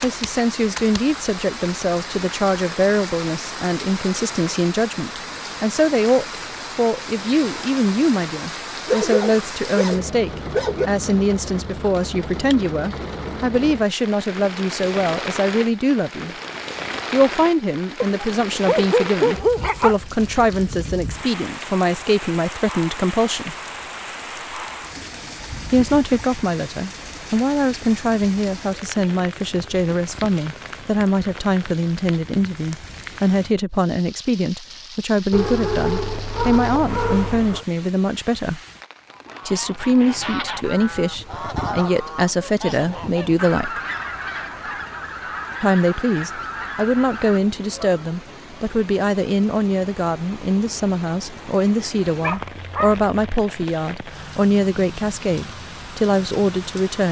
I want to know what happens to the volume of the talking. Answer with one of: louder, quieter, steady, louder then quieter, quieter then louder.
steady.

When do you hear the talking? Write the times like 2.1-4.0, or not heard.
0.0-16.4, 17.1-23.6, 25.7-38.6, 39.5-43.8, 45.6-57.0.